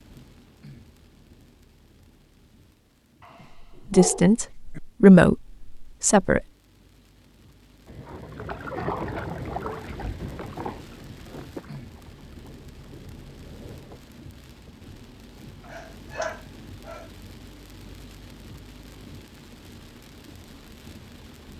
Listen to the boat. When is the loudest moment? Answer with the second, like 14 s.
9 s.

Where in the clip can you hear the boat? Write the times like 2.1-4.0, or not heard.
7.8-14.0.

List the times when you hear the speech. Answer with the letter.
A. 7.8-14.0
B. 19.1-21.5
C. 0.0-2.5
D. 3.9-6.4
D.